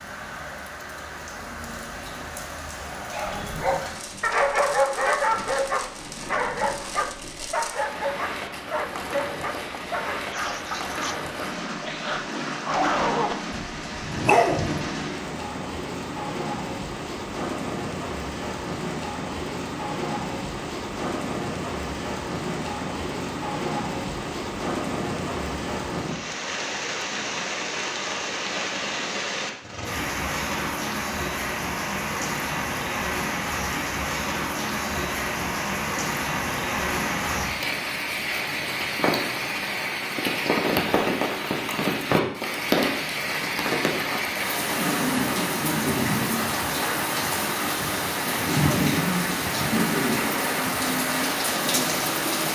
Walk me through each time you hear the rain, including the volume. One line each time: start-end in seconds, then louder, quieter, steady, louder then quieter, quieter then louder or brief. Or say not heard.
0.0-52.4 louder.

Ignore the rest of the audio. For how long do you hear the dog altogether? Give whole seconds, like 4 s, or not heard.
12 s.